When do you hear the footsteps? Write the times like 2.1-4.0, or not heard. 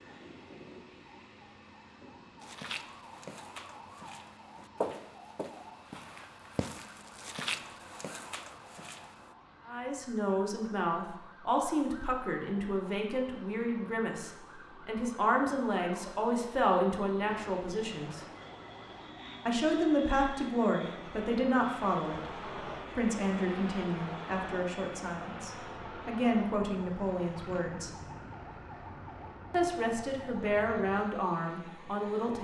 2.4-9.3.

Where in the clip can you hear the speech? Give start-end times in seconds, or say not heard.
9.7-18.2, 19.4-27.9, 29.5-32.3.